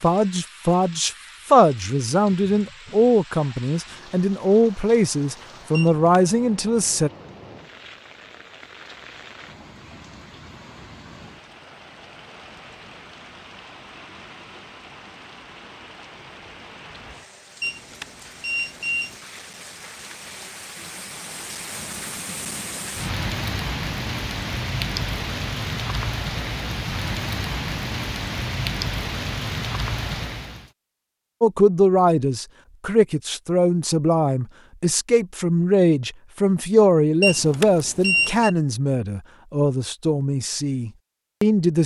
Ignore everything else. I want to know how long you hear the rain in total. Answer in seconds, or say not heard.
31 s.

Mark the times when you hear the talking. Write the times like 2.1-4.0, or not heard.
0.0-7.1, 31.4-41.8.